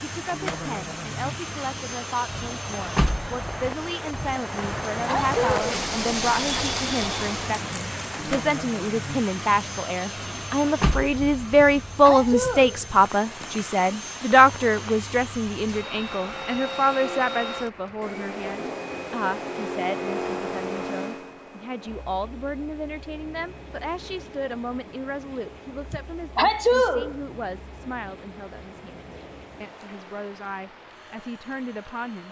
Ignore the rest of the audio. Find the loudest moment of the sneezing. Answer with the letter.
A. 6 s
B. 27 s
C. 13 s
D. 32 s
B.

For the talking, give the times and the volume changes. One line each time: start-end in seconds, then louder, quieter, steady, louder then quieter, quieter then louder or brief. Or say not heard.
0.0-32.2 louder then quieter.